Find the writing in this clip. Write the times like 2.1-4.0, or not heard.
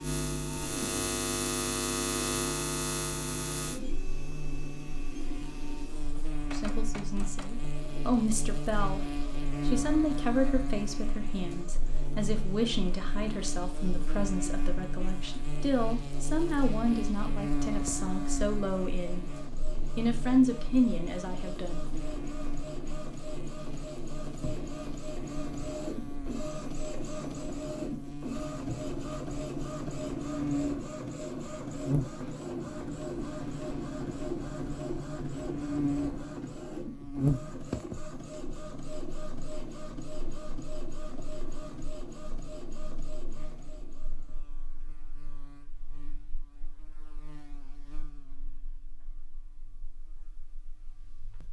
not heard.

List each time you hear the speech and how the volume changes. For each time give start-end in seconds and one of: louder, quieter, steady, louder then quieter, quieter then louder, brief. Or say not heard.
6.5-19.2 steady
19.9-21.9 brief.